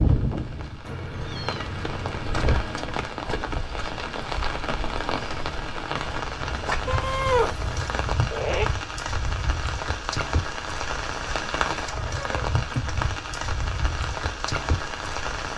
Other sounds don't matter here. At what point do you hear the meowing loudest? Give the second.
7 s.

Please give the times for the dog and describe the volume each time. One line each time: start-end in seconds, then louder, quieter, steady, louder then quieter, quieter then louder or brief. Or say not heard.
not heard.